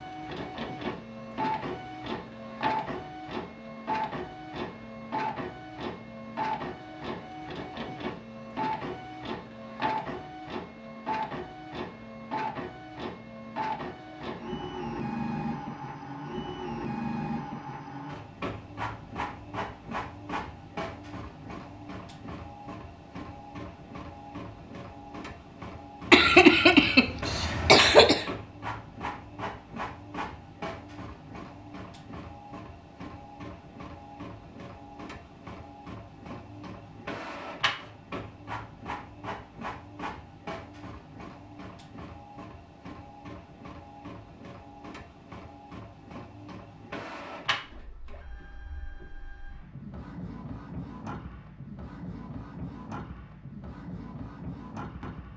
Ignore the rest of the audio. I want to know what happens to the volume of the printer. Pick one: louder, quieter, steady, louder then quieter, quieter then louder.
quieter.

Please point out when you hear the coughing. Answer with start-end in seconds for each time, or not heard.
26.1-28.2.